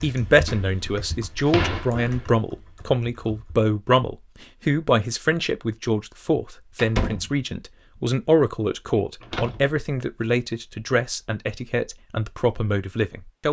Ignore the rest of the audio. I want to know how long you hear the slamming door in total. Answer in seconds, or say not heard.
3 s.